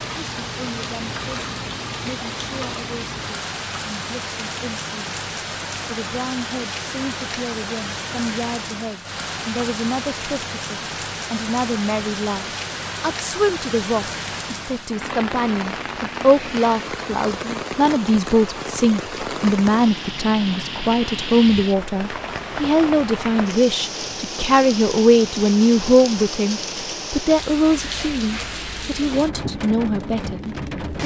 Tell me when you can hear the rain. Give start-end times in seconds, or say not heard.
0.0-31.0.